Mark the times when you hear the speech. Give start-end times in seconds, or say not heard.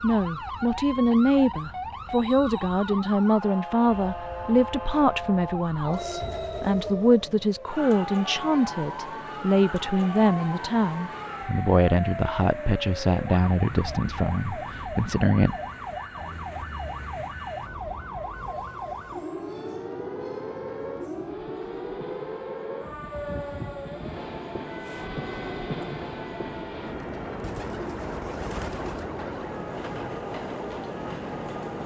0.0-15.6.